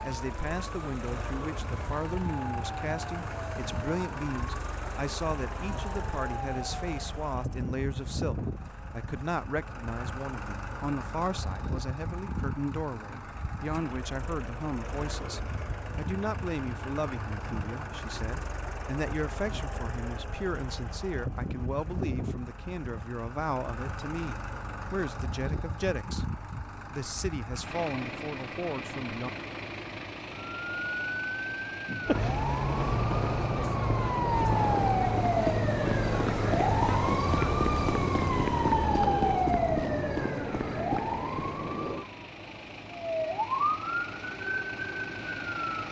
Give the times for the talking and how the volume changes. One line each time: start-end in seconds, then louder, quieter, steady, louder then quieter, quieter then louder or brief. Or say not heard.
0.0-29.3 steady.